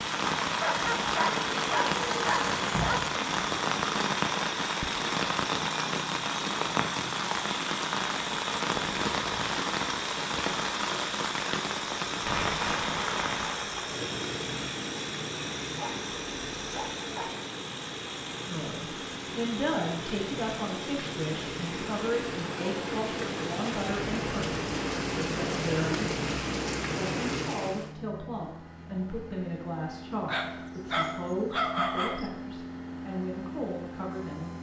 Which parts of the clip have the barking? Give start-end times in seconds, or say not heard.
0.6-3.1, 15.8-17.4, 30.2-32.3.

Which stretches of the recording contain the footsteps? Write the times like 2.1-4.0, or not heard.
not heard.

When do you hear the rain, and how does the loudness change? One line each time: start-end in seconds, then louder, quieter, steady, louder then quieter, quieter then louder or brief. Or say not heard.
0.0-27.9 quieter then louder.